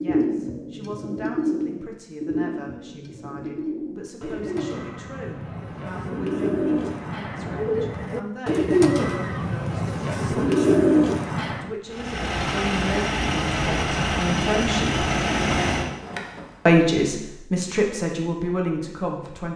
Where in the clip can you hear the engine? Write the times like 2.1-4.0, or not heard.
11.8-16.6.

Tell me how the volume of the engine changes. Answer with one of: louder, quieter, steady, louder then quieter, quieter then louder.
steady.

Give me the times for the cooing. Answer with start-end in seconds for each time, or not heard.
0.0-11.8.